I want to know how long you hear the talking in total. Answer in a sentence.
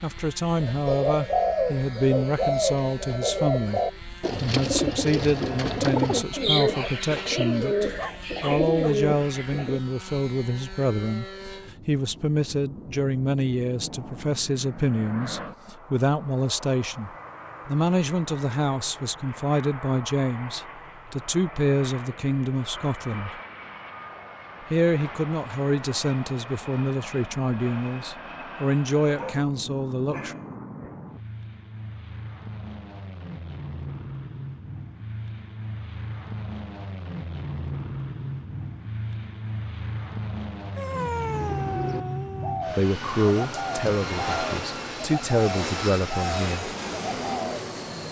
You can hear the talking for 33 seconds altogether.